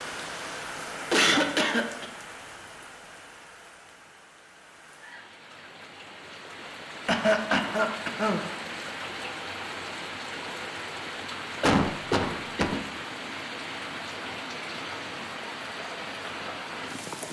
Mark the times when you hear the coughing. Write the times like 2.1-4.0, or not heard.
1.1-2.0, 7.0-8.4, 11.6-12.8.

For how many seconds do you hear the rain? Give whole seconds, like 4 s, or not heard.
17 s.